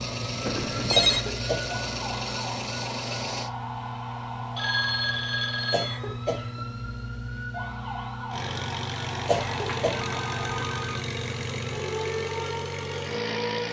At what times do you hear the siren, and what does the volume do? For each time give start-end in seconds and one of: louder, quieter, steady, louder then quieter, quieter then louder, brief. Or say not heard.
0.0-13.6 steady.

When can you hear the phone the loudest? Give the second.
1 s.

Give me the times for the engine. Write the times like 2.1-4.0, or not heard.
0.0-3.5, 8.3-13.6.